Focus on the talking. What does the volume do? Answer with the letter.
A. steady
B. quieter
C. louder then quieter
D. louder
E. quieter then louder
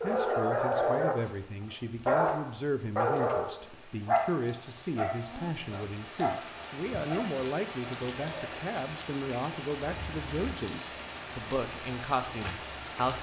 A.